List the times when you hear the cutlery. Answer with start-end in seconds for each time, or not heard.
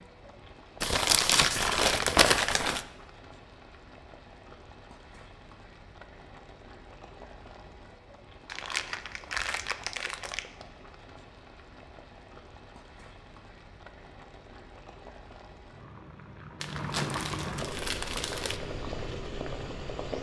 not heard.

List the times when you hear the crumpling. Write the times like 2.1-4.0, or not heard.
0.8-2.9, 8.4-10.5, 16.6-18.6.